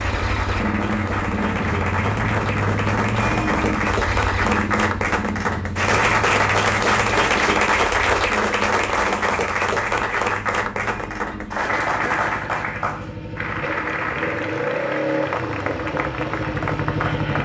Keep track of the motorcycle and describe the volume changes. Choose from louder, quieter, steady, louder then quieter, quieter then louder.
quieter then louder.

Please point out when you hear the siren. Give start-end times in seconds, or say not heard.
not heard.